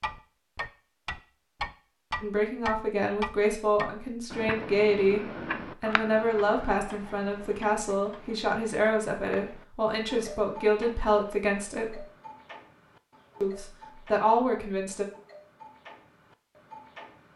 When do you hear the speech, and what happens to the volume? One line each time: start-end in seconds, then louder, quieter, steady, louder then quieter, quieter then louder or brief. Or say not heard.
2.2-12.1 steady
13.4-15.1 brief.